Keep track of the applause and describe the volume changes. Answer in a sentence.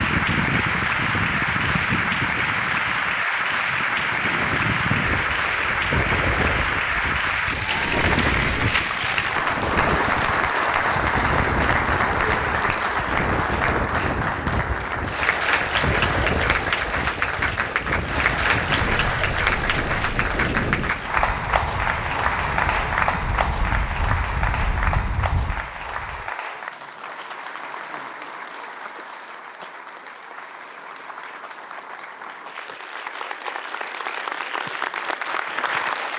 The volume of the applause goes down.